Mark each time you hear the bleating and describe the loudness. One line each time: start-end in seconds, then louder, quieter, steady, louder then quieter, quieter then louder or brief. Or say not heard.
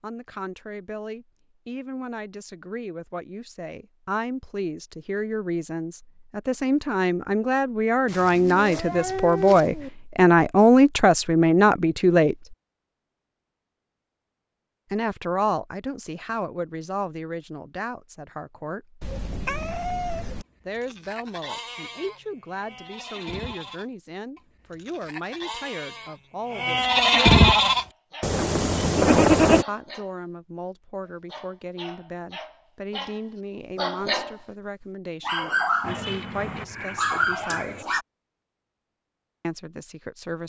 20.6-29.6 louder.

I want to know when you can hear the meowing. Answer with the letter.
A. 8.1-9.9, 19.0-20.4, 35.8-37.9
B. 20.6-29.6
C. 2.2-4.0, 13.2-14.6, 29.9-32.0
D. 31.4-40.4
A.